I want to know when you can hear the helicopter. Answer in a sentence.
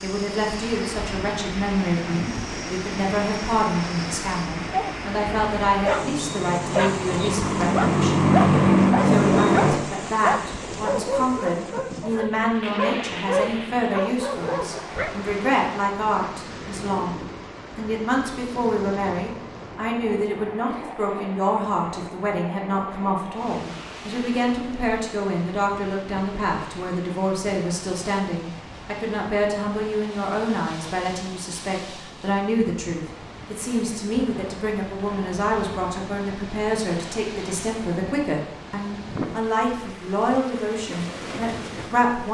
The helicopter can be heard from 0.0 to 9.8 s.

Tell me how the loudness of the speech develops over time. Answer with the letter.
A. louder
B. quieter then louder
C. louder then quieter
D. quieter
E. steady
E.